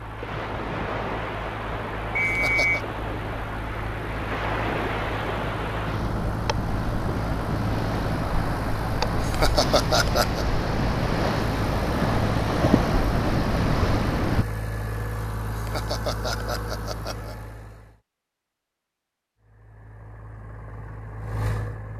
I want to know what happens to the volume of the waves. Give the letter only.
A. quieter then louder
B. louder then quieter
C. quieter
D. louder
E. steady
D.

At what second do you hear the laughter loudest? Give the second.
10 s.